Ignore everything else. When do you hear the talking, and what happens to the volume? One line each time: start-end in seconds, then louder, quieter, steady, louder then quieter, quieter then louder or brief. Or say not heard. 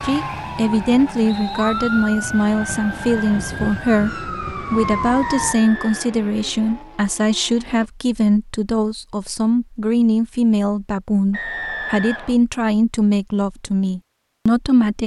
0.0-15.0 steady.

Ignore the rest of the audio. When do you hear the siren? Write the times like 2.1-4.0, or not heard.
0.0-5.5.